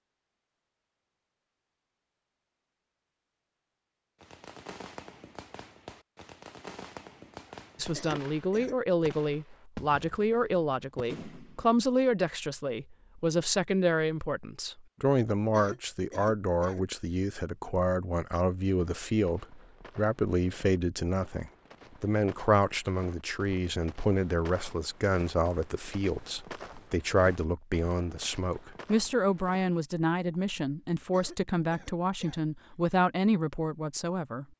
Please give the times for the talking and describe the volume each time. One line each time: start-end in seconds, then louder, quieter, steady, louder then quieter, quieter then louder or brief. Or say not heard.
7.8-34.5 steady.